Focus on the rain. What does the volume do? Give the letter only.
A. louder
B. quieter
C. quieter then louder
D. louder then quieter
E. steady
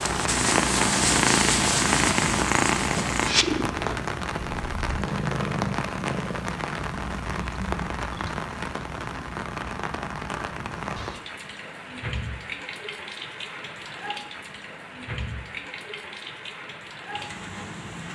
B.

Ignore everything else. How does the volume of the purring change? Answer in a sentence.
The loudness of the purring goes down.